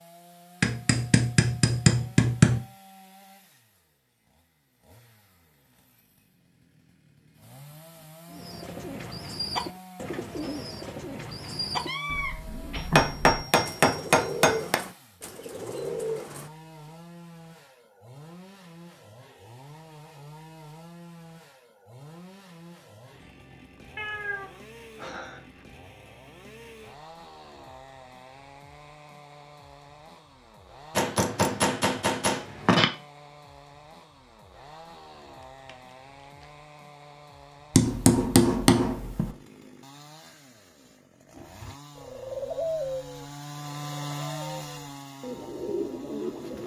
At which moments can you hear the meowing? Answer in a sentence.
You can hear the meowing from 11.8 to 12.9 s, from 23.9 to 25.4 s and from 35.4 to 36.5 s.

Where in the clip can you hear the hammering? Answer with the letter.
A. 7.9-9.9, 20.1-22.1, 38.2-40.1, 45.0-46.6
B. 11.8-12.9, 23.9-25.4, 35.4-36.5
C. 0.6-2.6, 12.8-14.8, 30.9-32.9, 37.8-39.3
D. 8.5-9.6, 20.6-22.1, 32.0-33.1
C.